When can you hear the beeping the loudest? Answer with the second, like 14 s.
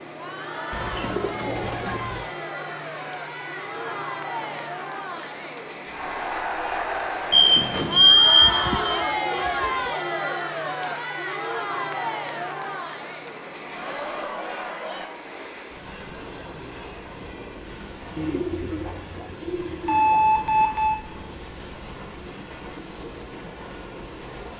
8 s.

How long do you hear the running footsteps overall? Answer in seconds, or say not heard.
not heard.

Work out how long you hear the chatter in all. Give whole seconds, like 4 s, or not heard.
15 s.